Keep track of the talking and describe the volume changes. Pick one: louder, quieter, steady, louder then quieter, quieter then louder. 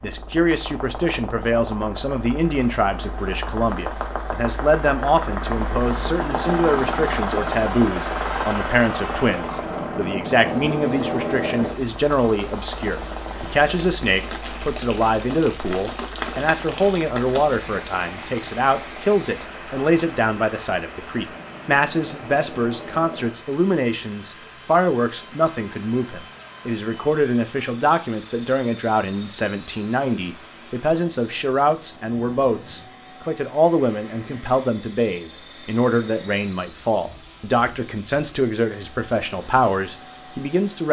steady.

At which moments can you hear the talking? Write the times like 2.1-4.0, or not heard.
0.0-40.8.